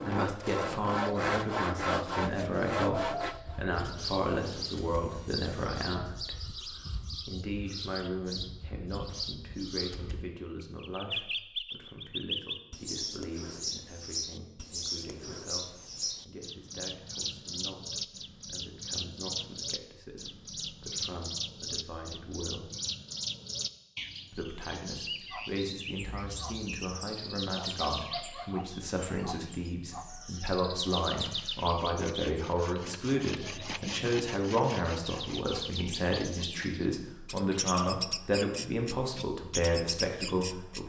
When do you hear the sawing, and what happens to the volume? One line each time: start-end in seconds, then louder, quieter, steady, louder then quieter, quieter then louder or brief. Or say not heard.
0.0-5.7 quieter
31.1-36.7 louder then quieter.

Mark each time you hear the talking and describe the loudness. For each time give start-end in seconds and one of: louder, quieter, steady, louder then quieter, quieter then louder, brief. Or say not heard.
0.1-22.7 quieter
24.3-40.8 louder.